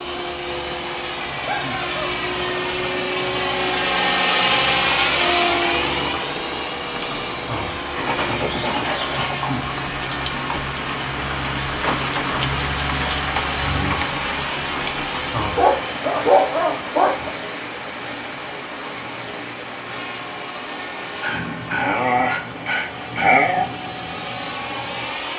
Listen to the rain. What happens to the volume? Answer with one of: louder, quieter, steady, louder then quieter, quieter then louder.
louder then quieter.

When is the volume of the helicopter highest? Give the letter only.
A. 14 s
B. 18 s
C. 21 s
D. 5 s
D.